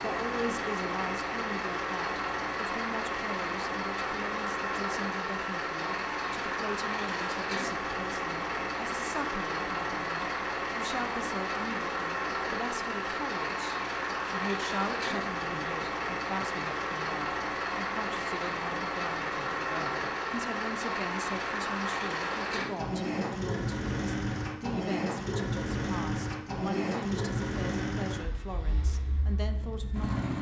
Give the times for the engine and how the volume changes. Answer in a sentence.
The engine can be heard from 0.0 to 30.3 s, at a steady volume.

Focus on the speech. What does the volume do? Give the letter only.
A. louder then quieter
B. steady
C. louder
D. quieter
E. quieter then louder
B.